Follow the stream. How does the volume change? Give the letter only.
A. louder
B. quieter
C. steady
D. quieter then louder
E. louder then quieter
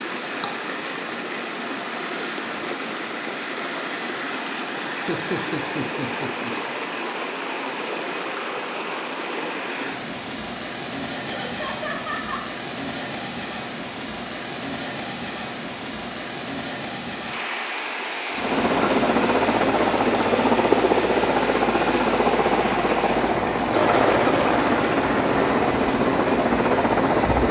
C.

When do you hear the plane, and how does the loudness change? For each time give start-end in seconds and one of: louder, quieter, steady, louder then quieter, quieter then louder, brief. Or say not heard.
18.3-27.4 steady.